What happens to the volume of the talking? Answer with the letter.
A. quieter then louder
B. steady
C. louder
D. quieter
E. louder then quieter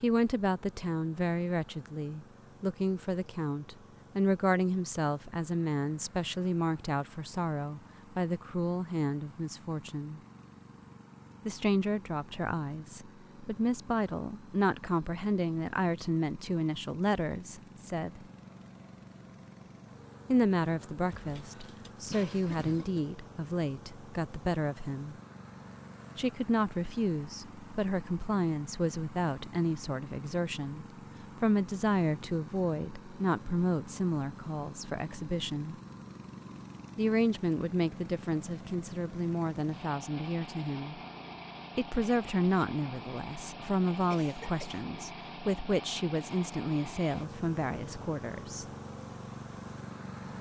B.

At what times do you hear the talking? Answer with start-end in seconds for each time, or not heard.
0.0-10.2, 11.4-18.2, 20.3-25.1, 26.1-35.8, 37.0-41.0, 41.8-48.6.